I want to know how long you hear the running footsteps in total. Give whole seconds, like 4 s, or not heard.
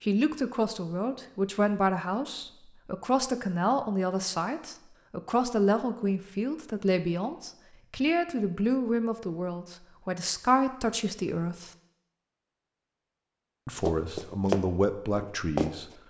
2 s.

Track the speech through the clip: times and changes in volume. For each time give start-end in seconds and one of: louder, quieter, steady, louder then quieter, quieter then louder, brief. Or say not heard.
0.0-11.7 steady
13.7-15.8 brief.